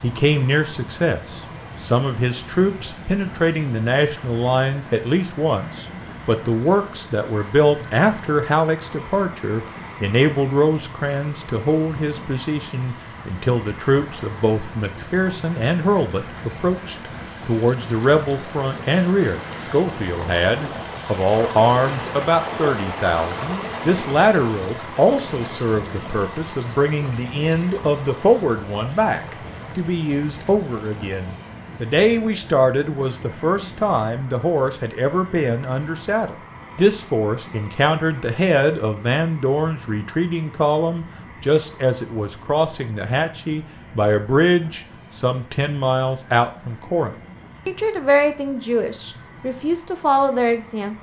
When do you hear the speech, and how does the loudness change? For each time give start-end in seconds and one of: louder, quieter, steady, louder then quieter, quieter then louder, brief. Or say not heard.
0.0-50.9 steady.